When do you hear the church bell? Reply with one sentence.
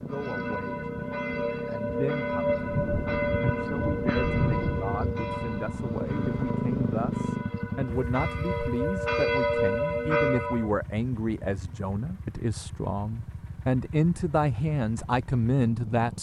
You can hear the church bell from 0.0 to 10.7 s.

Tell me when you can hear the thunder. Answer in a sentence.
The thunder can be heard from 2.5 to 5.2 s.